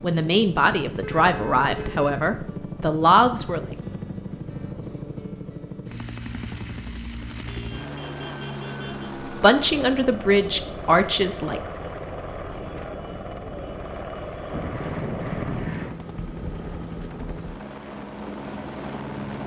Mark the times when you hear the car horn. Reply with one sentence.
You can hear the car horn from 1.0 to 2.1 s, from 7.5 to 9.2 s and from 14.5 to 15.9 s.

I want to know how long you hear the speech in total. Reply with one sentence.
You can hear the speech for 6 seconds altogether.